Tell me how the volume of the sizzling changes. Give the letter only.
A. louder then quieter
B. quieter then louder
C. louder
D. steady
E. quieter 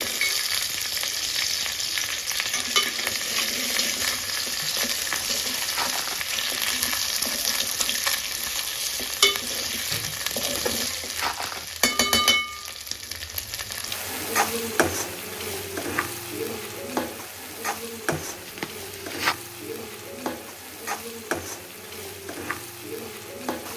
E.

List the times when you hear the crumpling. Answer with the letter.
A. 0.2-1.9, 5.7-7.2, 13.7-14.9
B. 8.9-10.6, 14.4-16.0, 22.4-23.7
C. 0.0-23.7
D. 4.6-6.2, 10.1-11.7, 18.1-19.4
D.